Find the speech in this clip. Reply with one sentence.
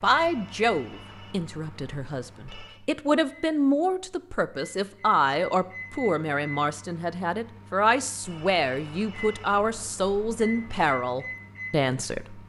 The speech can be heard from 0.0 to 12.4 s.